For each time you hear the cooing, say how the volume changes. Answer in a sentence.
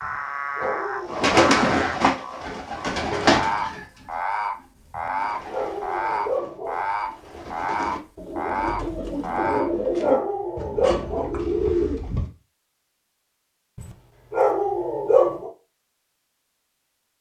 The cooing can be heard from 0.6 to 12.3 s, getting quieter then louder.